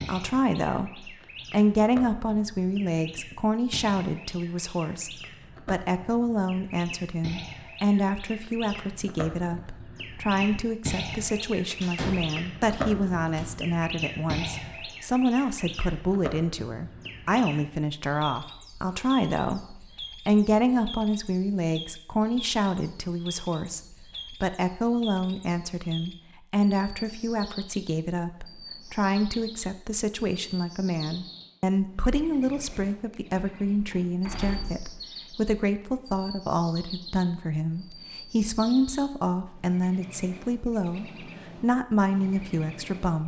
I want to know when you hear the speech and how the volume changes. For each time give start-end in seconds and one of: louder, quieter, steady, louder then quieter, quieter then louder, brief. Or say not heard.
0.0-43.2 steady.